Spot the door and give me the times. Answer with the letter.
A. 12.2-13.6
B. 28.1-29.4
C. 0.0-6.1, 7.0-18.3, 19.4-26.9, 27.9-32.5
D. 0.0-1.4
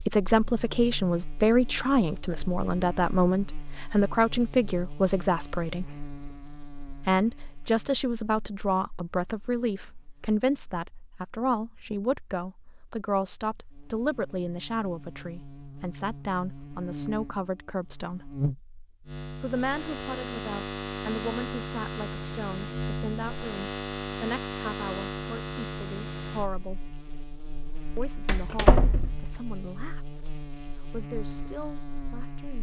B.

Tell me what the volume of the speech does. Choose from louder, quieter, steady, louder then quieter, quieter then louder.
quieter.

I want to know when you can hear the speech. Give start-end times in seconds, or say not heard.
0.0-6.1, 7.0-18.3, 19.4-26.9, 27.9-32.5.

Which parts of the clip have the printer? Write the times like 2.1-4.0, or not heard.
not heard.